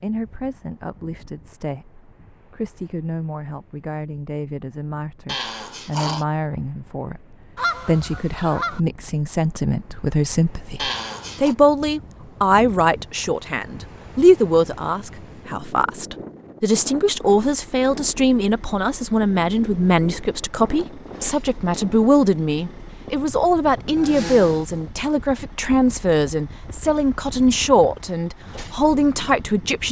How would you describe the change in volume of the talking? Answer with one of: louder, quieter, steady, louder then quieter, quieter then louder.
louder.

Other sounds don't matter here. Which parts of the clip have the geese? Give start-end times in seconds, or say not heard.
7.5-8.8.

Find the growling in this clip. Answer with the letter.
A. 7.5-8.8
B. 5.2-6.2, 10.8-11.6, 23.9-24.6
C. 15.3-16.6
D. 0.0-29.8
B.